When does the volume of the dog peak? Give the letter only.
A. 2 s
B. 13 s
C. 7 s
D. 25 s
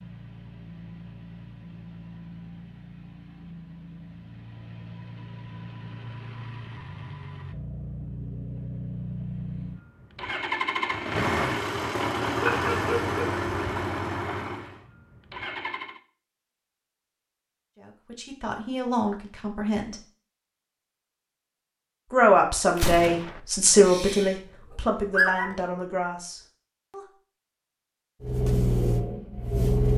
D.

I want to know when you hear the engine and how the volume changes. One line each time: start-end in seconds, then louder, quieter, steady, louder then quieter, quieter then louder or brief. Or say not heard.
0.0-16.0 louder
28.2-29.9 brief.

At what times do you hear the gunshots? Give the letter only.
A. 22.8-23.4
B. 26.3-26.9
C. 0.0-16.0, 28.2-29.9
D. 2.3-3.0
A.